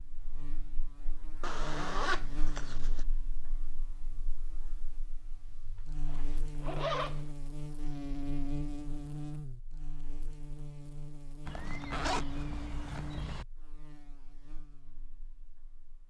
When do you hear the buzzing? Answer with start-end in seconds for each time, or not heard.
0.0-16.0.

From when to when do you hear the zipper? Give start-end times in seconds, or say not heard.
1.4-3.0, 6.0-7.3, 11.4-13.4.